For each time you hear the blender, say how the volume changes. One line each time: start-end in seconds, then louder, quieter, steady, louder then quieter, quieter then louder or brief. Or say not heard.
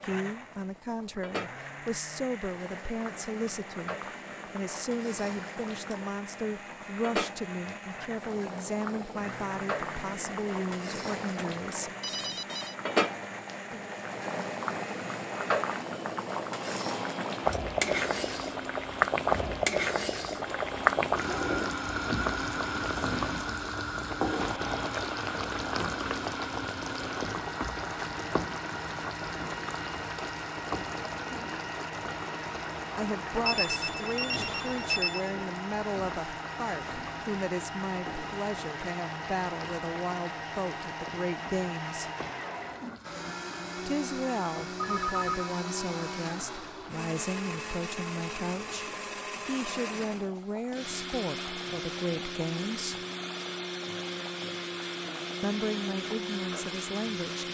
0.0-57.4 louder.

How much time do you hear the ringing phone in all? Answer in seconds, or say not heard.
3 s.